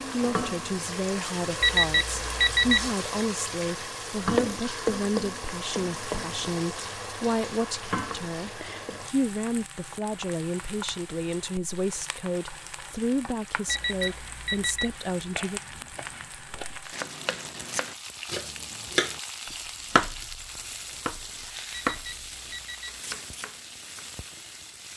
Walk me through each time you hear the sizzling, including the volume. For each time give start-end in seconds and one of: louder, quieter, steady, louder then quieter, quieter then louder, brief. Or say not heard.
0.0-24.9 quieter.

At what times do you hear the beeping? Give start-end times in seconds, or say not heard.
1.6-2.9, 13.7-14.9, 21.7-23.0.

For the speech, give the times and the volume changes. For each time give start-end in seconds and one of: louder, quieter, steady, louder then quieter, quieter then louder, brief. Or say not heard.
0.1-15.6 steady.